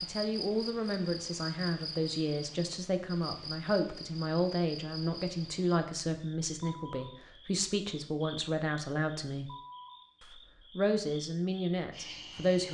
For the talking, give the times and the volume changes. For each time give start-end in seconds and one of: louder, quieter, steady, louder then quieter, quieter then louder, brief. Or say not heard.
0.0-9.5 steady
10.2-12.6 brief.